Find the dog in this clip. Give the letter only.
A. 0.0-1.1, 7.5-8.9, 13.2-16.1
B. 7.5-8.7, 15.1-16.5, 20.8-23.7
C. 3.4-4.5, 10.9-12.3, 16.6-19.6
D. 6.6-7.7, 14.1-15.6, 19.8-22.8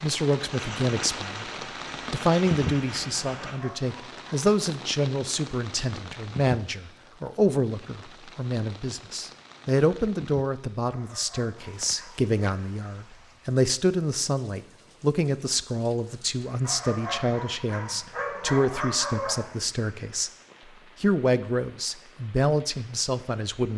C.